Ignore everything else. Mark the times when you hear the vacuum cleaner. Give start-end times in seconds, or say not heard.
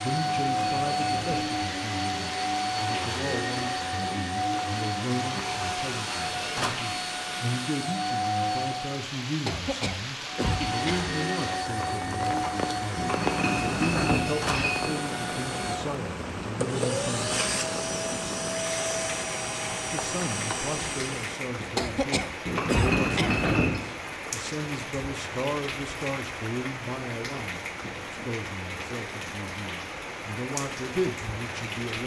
0.0-9.0, 10.2-21.4.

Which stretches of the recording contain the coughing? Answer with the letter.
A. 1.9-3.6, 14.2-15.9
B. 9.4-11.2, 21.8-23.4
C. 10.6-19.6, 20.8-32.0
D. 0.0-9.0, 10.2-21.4
B.